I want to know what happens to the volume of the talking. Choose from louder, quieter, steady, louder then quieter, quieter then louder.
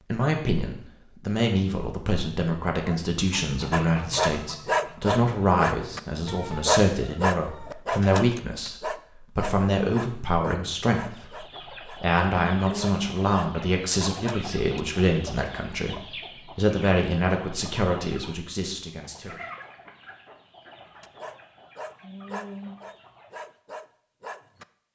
steady.